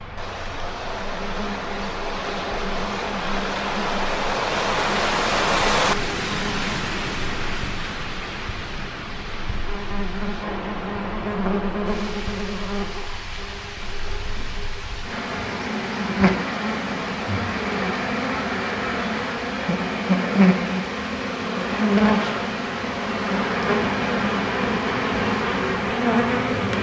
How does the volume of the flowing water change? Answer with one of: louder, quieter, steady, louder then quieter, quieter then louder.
quieter.